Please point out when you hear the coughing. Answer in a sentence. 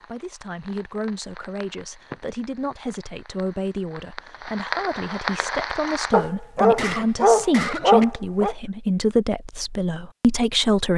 The coughing can be heard from 6.8 to 8.1 s.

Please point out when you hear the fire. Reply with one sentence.
You can hear the fire from 0.0 to 6.2 s.